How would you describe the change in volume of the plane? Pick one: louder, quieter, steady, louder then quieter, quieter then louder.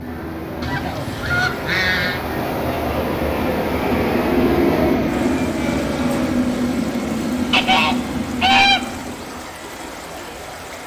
louder then quieter.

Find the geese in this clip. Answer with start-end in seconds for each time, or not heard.
0.6-2.2, 7.5-8.8.